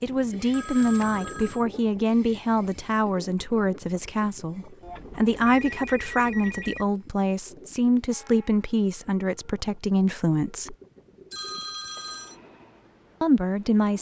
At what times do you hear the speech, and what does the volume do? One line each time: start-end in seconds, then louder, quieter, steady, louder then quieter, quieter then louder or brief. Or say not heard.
0.0-10.8 steady
13.2-13.9 brief.